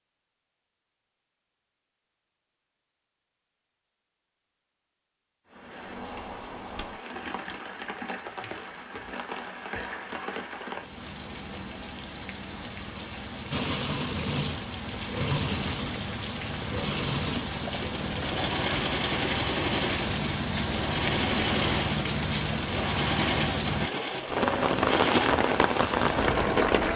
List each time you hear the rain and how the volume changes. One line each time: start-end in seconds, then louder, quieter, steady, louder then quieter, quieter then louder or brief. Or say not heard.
5.5-26.9 louder.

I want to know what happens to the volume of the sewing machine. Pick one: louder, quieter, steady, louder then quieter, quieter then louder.
steady.